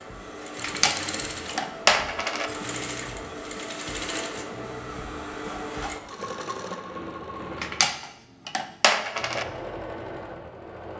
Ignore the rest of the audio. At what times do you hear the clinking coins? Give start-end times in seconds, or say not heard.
0.6-2.5, 7.5-9.4.